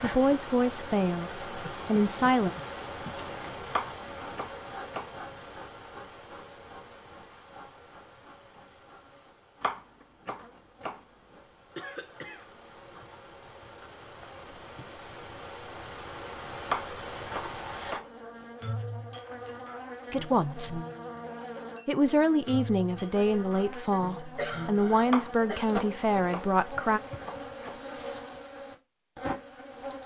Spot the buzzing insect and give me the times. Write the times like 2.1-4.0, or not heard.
0.0-30.0.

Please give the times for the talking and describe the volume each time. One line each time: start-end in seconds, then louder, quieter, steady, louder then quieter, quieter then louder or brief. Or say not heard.
0.0-2.5 brief
20.1-20.8 brief
21.9-27.0 steady.